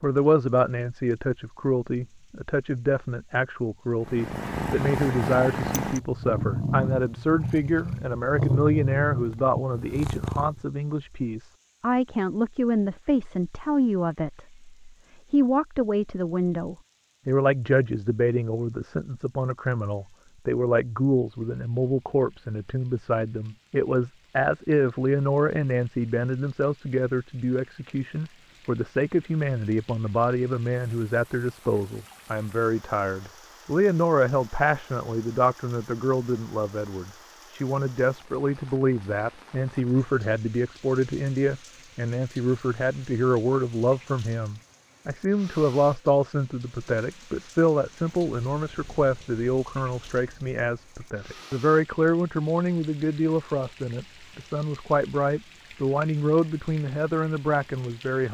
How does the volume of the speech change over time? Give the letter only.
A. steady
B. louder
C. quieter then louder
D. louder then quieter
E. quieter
A.